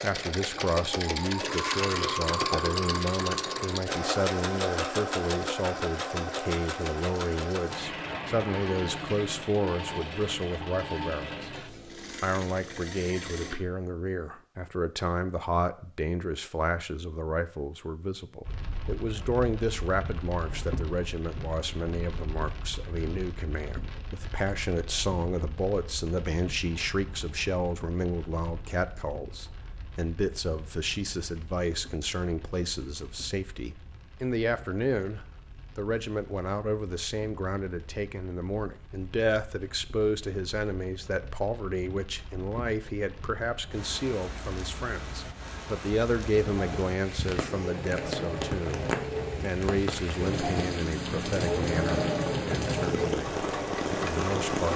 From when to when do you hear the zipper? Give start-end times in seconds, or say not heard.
not heard.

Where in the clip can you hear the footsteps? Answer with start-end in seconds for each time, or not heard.
not heard.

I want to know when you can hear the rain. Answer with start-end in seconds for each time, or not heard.
18.4-54.7.